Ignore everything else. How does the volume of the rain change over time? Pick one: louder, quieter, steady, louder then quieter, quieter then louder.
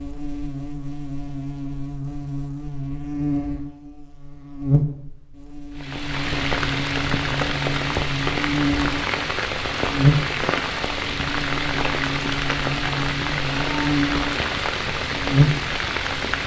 steady.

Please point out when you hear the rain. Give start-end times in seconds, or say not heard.
5.8-16.4.